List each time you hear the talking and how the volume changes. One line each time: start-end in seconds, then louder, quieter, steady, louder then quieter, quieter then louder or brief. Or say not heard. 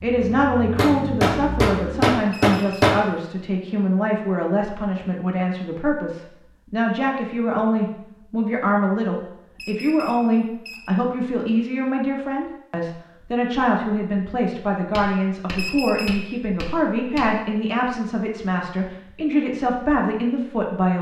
0.0-20.9 steady.